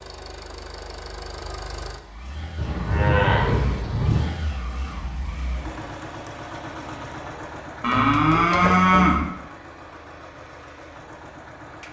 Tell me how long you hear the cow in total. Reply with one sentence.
The cow can be heard for 3 seconds in total.